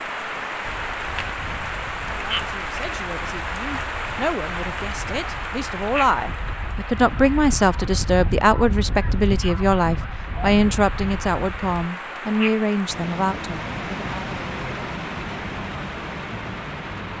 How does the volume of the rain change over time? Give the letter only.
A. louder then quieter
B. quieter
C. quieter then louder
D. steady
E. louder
C.